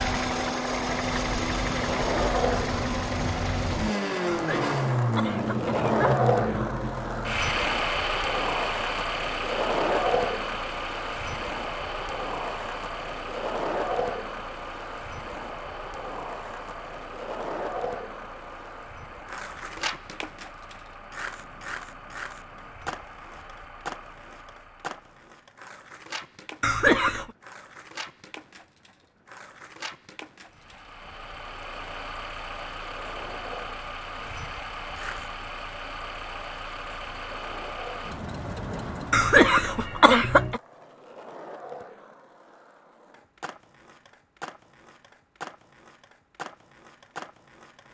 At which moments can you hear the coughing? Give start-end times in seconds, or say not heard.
4.2-6.0, 26.6-27.3, 39.1-40.6.